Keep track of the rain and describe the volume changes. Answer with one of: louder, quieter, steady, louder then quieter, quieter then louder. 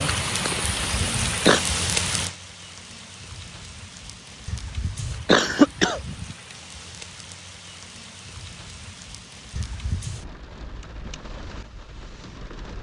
quieter.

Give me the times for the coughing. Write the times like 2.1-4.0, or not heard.
0.8-1.6, 4.5-6.3, 9.6-10.2.